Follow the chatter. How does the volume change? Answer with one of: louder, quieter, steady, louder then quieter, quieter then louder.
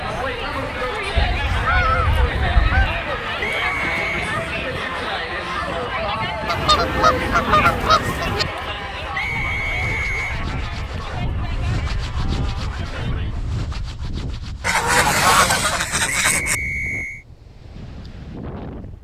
quieter.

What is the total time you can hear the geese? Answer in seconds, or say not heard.
6 s.